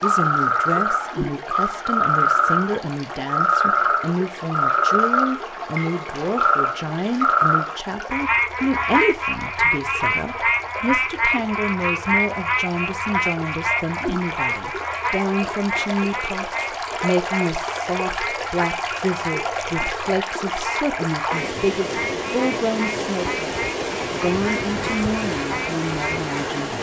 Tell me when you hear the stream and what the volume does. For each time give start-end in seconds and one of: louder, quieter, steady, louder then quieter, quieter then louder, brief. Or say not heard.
0.0-26.7 louder.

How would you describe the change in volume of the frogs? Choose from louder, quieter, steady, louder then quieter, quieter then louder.
quieter.